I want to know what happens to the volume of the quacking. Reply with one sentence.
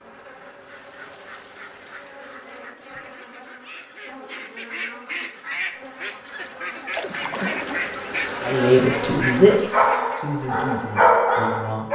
The volume of the quacking goes up.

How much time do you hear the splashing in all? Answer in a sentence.
The splashing can be heard for 3 seconds in total.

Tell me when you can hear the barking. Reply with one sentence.
You can hear the barking from 9.0 to 11.9 s.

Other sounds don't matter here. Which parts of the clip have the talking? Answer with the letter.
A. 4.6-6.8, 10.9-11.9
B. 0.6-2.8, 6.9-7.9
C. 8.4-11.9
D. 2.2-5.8
C.